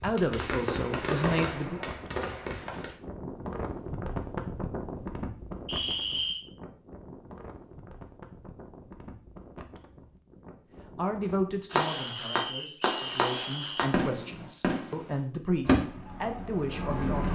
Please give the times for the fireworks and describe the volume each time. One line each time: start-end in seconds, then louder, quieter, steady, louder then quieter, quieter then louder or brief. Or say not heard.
0.0-3.0 brief
11.7-17.3 louder then quieter.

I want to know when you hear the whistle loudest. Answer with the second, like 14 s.
6 s.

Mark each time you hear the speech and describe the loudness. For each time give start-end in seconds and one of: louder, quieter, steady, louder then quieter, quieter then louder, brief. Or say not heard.
0.0-1.8 brief
10.8-17.3 quieter then louder.